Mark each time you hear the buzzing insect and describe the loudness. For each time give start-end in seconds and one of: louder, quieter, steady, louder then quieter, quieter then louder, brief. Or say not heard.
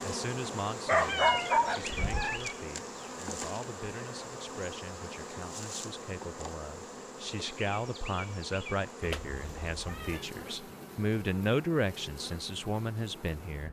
0.0-13.6 quieter.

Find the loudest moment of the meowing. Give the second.
1 s.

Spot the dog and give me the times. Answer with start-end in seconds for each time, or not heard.
0.8-2.4.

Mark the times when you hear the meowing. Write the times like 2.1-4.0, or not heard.
0.9-2.4, 9.0-10.2.